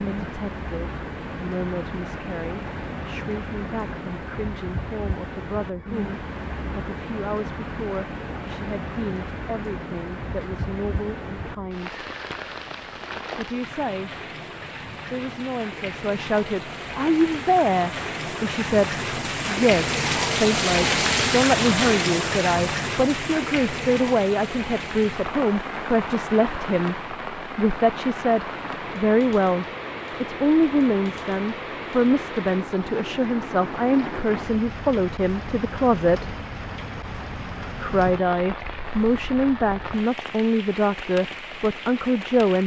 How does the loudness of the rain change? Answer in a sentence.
The loudness of the rain goes up, then down.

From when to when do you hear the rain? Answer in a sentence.
You can hear the rain from 0.0 to 42.6 s.